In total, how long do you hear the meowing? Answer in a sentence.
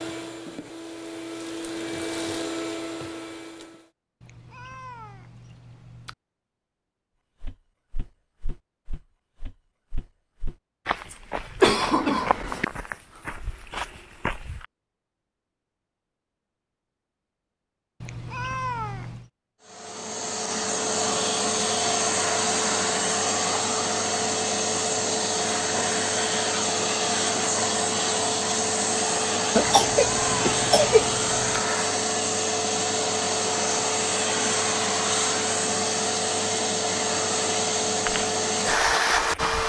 You can hear the meowing for 5 seconds altogether.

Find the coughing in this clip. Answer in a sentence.
The coughing can be heard from 11.6 to 12.7 s and from 29.6 to 31.1 s.